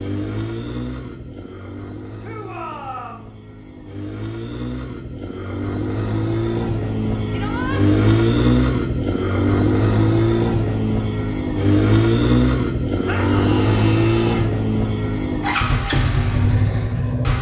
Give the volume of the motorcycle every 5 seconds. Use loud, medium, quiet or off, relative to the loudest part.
quiet, loud, loud, loud.